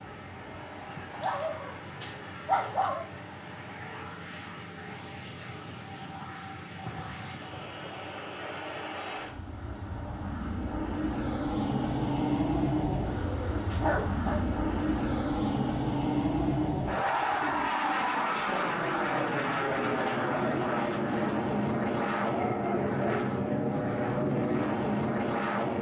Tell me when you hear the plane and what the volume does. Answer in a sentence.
You can hear the plane from 0.0 to 25.7 s, getting louder.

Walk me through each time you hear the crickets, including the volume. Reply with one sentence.
The crickets can be heard from 0.0 to 25.7 s, getting quieter.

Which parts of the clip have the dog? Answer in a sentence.
You can hear the dog from 1.1 to 3.0 s, from 12.9 to 14.5 s and from 22.2 to 24.0 s.